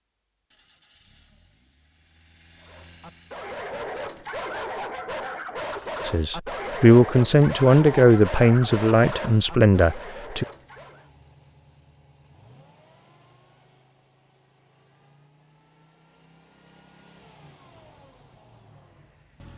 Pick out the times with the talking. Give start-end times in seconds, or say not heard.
6.0-10.4.